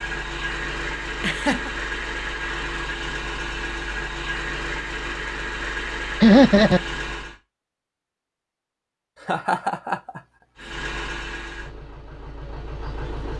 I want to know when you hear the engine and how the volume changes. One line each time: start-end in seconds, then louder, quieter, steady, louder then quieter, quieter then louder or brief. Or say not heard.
0.0-7.3 steady
10.6-13.3 brief.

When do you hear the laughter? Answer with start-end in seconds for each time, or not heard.
1.2-1.7, 6.2-6.8, 9.2-10.2.